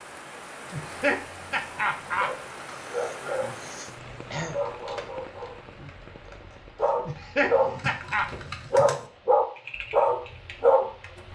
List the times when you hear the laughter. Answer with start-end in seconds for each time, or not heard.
0.7-2.5, 7.0-8.3.